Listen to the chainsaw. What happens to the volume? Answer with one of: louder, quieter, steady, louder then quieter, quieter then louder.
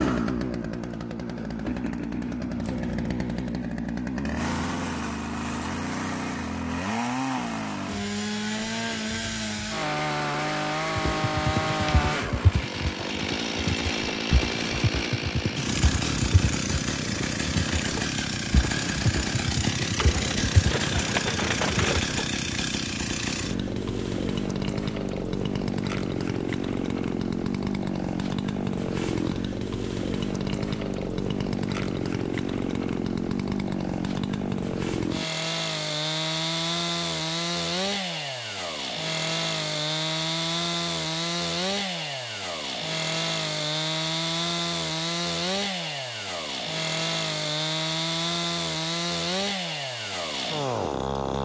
steady.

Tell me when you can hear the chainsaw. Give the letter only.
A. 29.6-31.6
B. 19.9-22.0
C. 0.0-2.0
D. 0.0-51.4
D.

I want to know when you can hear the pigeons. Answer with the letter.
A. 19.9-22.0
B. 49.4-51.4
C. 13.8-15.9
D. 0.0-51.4
A.